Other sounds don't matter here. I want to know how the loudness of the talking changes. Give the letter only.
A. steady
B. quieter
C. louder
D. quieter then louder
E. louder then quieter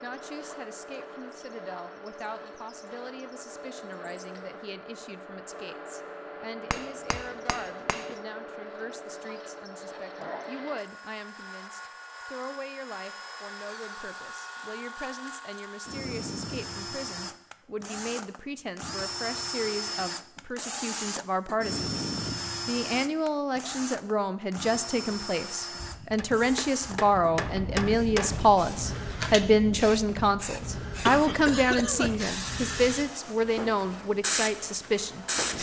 C.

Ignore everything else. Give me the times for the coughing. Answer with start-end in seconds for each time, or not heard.
31.1-32.1.